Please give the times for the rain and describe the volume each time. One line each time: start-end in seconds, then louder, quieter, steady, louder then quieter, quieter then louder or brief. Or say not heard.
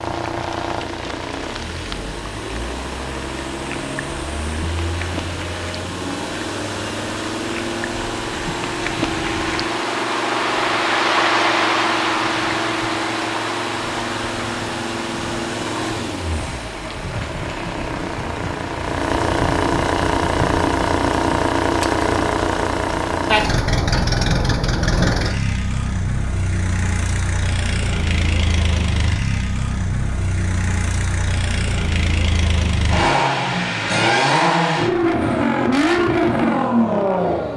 0.0-21.5 louder then quieter.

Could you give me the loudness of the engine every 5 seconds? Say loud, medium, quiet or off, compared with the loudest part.
medium, medium, medium, medium, loud, medium, loud, loud.